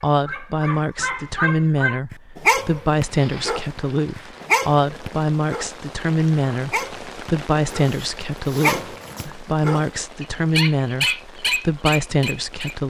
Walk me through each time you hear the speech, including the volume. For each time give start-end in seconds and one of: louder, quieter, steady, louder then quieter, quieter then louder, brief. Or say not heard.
0.0-12.8 steady.